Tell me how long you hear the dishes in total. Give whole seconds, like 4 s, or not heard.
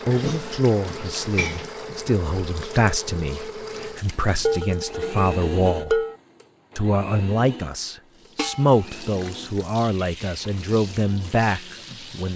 4 s.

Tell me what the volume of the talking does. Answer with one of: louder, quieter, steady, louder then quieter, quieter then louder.
steady.